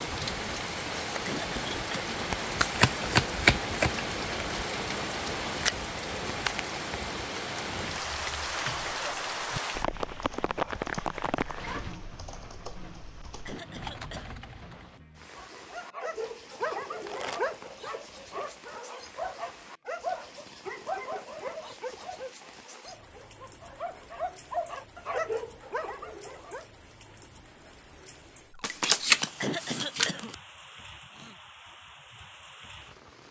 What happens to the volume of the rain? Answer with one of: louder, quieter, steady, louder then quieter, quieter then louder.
quieter.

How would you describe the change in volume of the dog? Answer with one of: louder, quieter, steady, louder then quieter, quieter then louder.
quieter then louder.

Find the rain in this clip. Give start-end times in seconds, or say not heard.
0.0-33.2.